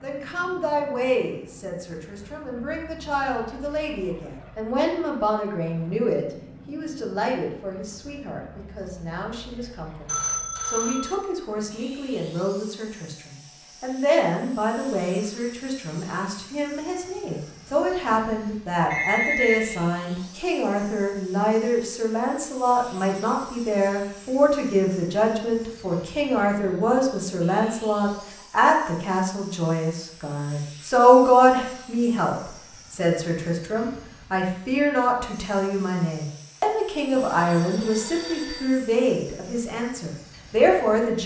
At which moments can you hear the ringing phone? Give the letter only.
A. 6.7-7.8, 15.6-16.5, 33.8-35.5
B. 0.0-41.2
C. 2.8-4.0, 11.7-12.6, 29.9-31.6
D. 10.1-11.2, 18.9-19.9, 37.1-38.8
D.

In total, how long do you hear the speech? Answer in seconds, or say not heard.
41 s.